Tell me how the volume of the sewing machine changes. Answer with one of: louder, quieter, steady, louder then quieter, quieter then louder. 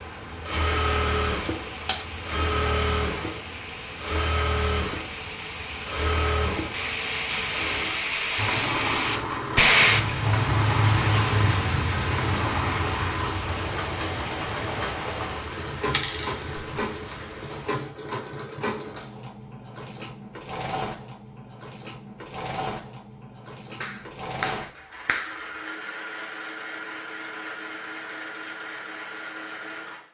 quieter.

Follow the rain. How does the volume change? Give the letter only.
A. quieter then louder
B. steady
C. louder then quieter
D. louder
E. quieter
C.